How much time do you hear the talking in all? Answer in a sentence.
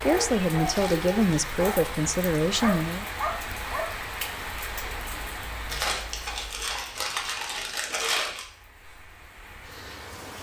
You can hear the talking for 3 seconds altogether.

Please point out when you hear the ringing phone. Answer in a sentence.
You can't hear the ringing phone here.